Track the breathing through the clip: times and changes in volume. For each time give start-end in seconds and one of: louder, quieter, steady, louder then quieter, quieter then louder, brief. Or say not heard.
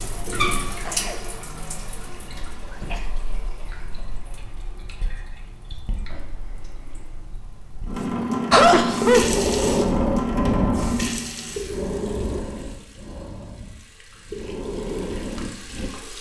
8.5-15.9 quieter then louder.